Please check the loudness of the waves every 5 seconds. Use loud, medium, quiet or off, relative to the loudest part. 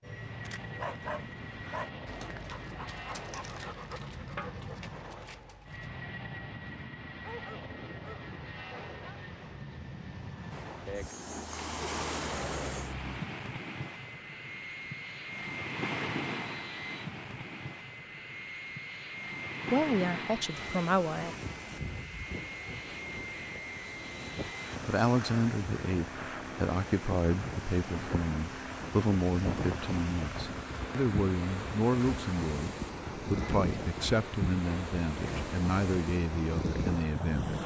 off, off, loud, loud, medium, loud, loud, loud.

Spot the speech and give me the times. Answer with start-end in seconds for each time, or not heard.
19.7-21.4, 24.9-37.6.